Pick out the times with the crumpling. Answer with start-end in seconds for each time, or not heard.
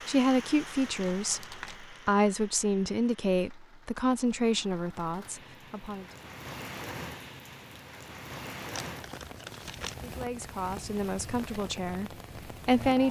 0.8-1.9, 8.6-9.9.